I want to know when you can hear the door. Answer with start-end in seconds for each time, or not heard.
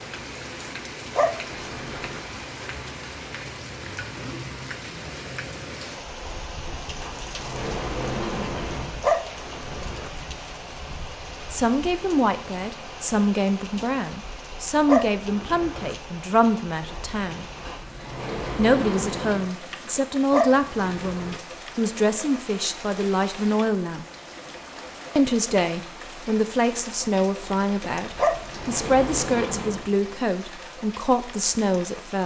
6.2-9.0, 16.9-19.5, 27.4-29.9.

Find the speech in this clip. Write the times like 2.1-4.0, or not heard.
11.5-17.4, 18.6-24.1, 25.1-32.2.